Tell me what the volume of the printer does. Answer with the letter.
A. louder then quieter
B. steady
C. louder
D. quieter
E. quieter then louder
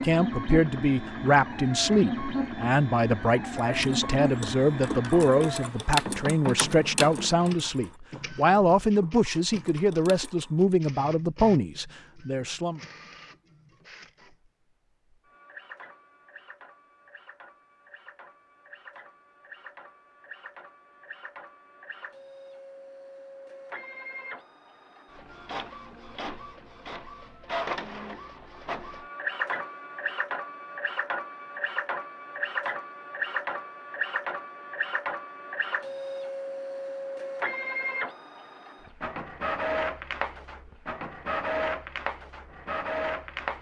E.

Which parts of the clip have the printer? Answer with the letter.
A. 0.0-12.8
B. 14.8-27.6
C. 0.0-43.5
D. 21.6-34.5
C.